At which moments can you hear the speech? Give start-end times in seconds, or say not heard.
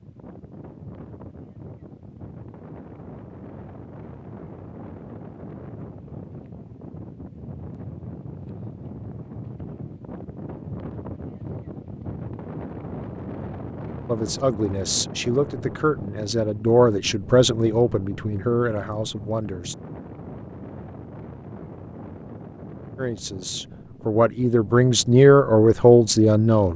14.1-19.8, 22.9-26.7.